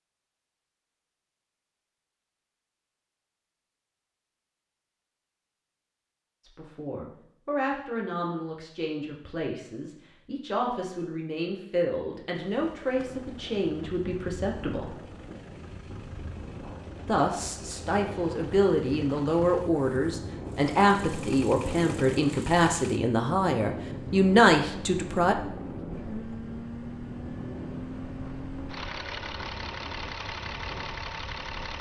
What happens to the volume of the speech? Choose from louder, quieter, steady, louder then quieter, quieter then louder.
louder.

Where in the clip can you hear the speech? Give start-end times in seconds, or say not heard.
6.4-14.9, 17.1-25.4.